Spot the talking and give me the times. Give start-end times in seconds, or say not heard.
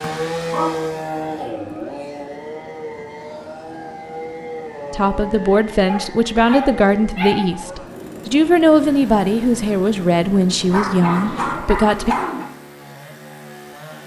4.9-12.2.